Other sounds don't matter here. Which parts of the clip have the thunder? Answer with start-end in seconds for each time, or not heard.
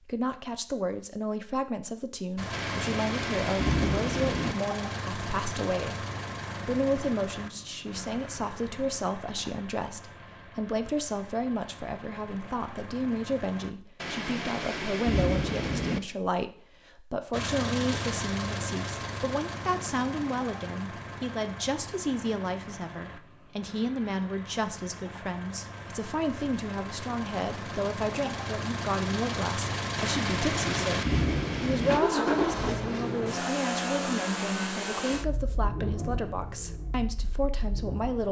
2.5-4.5, 14.0-16.0, 29.9-32.0.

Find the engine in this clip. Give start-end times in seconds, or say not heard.
2.4-13.8, 17.3-38.2.